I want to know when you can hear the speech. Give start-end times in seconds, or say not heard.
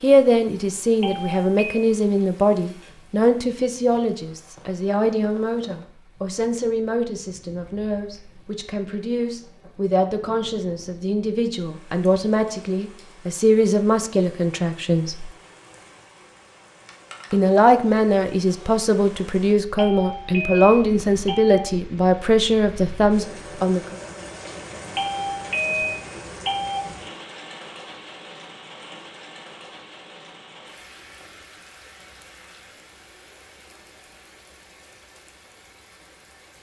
0.0-15.3, 17.3-24.0.